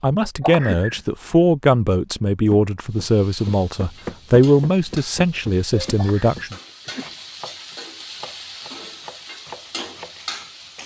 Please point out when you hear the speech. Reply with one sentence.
The speech can be heard from 0.0 to 6.5 s.